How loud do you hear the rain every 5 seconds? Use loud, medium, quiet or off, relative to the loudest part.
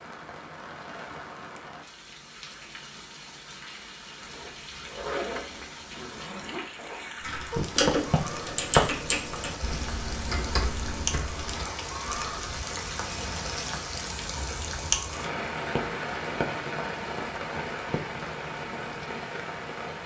medium, medium, loud, loud.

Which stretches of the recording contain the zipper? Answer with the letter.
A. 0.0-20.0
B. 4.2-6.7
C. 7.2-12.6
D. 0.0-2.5
B.